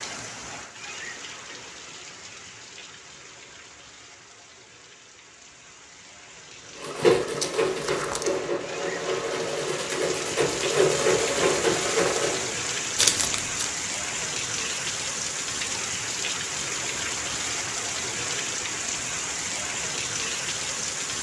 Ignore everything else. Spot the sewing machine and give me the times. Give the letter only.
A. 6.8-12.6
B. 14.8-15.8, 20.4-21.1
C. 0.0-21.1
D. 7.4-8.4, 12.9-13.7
A.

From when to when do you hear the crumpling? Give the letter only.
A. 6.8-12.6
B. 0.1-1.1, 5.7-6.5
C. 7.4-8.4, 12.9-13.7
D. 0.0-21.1
C.